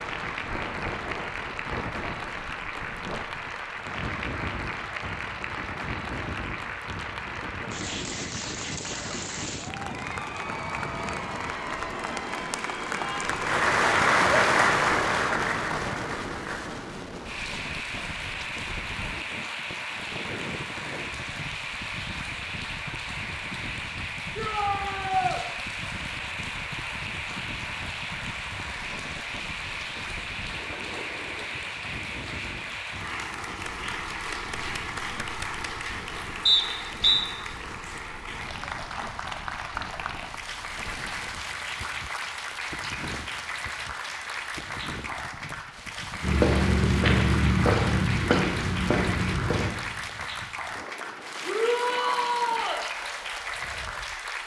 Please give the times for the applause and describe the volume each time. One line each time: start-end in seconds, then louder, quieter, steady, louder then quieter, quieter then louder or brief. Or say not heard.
0.0-54.4 louder then quieter.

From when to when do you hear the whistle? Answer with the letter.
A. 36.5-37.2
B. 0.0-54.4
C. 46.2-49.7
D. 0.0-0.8
A.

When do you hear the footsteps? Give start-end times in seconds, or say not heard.
46.2-49.7.